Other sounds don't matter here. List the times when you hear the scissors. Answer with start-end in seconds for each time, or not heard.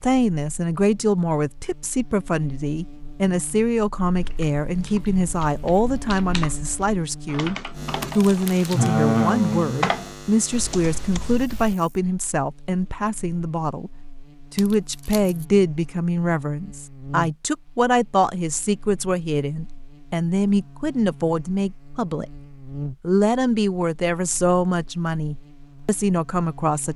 not heard.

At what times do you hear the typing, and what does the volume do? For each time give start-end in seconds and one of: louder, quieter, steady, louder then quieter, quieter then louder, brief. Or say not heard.
4.2-11.8 louder then quieter.